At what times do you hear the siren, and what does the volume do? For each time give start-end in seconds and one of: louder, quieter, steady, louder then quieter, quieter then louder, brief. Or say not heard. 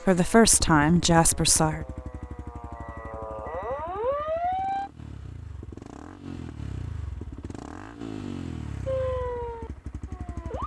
0.0-4.9 louder
8.8-10.6 brief.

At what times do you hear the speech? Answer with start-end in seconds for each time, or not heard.
0.1-1.9.